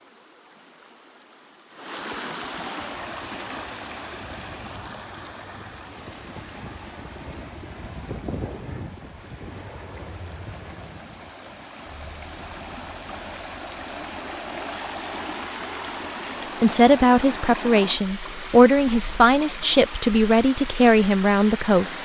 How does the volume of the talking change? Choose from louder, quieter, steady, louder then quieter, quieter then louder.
steady.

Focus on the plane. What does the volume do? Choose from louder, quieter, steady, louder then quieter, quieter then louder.
louder then quieter.